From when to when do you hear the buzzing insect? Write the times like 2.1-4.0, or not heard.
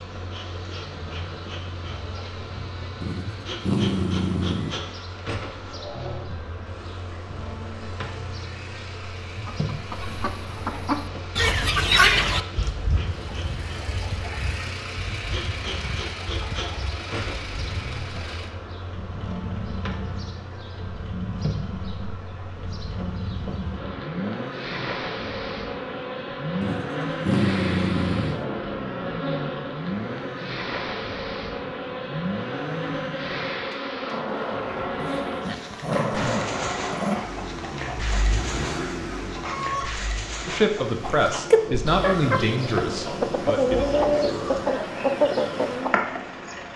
0.0-46.7.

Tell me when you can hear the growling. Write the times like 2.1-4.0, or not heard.
3.0-4.8, 26.6-28.4, 35.0-37.2.